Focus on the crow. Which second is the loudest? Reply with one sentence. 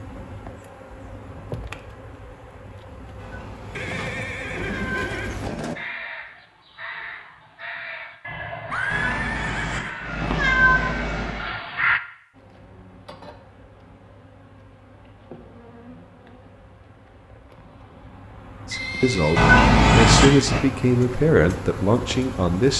The volume of the crow peaks at 12 seconds.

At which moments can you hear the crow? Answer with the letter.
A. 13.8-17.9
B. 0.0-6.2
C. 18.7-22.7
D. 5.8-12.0
D.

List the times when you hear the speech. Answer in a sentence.
You can hear the speech from 18.7 to 22.7 s.